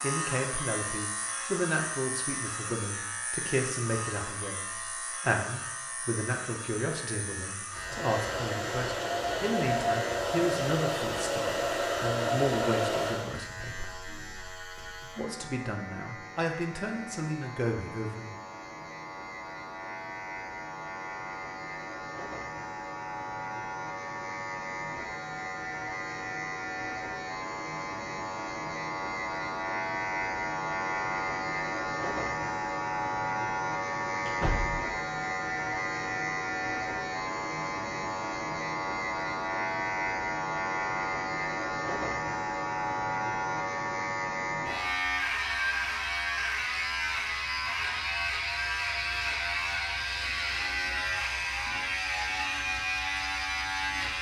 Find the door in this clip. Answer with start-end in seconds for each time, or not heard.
34.2-34.8.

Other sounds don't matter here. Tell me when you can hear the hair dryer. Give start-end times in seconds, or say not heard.
7.8-13.3.